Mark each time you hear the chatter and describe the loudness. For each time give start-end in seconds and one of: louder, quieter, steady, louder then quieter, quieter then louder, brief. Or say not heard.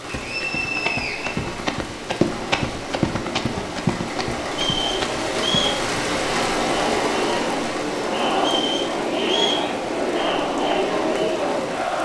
0.0-12.0 louder.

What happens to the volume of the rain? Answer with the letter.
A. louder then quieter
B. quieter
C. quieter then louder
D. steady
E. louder
A.